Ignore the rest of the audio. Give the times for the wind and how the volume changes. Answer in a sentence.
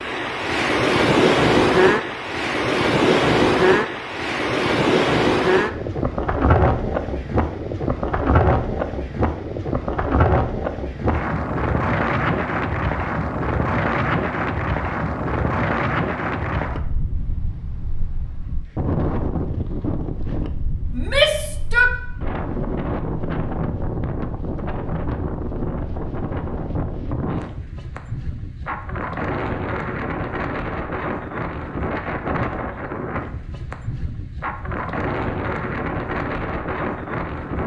You can hear the wind from 0.0 to 37.6 s, getting quieter.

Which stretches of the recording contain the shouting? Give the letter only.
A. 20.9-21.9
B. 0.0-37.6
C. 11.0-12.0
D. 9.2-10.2
A.